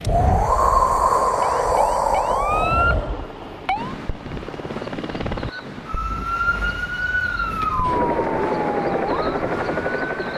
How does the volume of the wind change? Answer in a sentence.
The loudness of the wind goes down.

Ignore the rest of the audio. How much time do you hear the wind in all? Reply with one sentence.
You can hear the wind for 10 seconds altogether.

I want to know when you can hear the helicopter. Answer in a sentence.
You can hear the helicopter from 2.5 to 5.5 s and from 7.8 to 10.3 s.